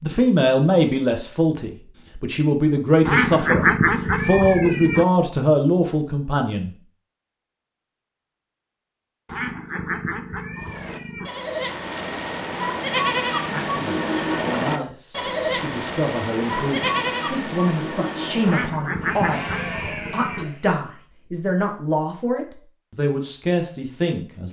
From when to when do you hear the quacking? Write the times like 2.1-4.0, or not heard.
3.0-5.0, 9.2-11.3, 18.4-20.4.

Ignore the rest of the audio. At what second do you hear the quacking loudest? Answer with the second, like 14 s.
4 s.